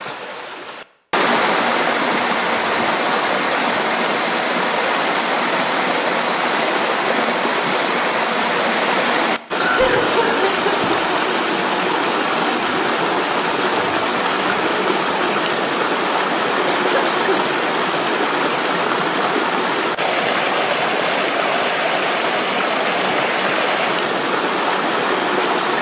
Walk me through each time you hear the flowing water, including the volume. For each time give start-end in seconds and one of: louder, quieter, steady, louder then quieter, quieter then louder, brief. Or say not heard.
0.0-25.7 steady.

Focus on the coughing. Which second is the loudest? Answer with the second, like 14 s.
10 s.